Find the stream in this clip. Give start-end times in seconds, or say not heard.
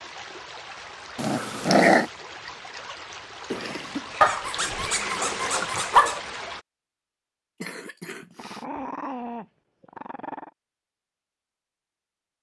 0.0-6.7.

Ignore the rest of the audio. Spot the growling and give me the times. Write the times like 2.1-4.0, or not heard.
1.1-2.0, 4.2-6.2, 8.3-10.5.